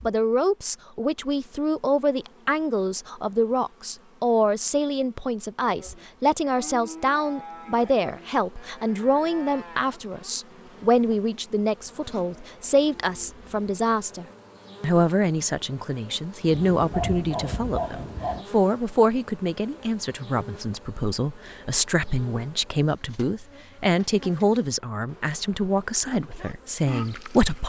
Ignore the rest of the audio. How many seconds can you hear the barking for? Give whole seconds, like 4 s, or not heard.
2 s.